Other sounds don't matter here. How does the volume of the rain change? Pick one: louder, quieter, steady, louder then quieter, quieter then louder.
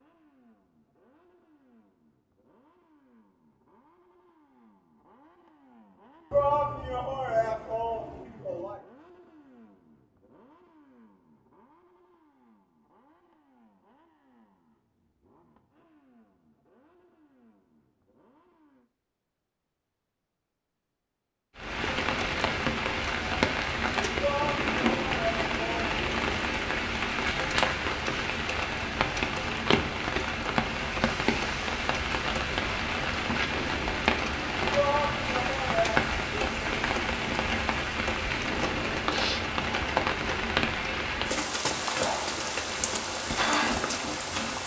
steady.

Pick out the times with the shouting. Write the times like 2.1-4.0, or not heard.
6.3-8.8, 24.2-25.9, 34.7-36.1.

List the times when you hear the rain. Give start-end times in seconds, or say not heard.
21.6-44.6.